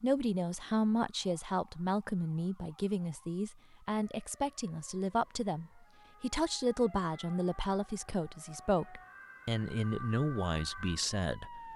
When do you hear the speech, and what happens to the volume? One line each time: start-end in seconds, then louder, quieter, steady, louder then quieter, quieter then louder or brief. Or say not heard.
0.0-11.7 steady.